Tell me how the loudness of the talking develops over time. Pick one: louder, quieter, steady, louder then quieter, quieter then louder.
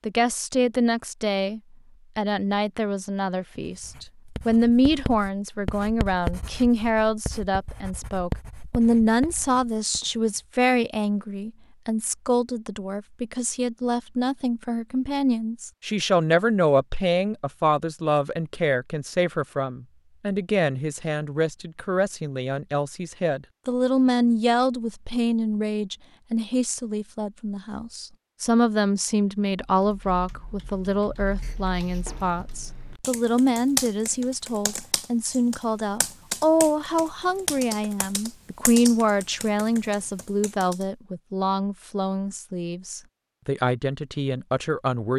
steady.